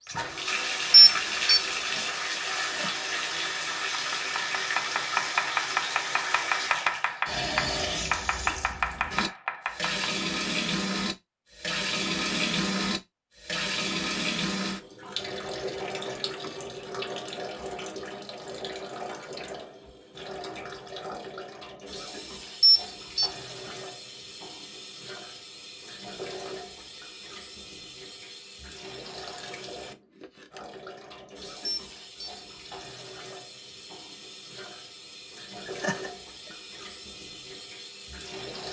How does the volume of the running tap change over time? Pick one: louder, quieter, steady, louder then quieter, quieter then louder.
quieter.